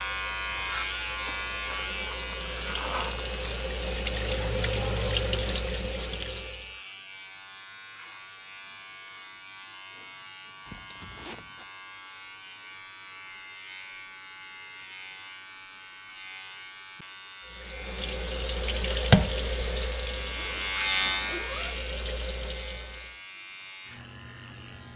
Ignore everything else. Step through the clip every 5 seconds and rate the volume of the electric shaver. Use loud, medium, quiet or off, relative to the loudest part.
loud, medium, medium, medium, loud.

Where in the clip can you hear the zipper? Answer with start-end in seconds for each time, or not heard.
1.2-3.3, 10.7-11.7, 20.1-21.8.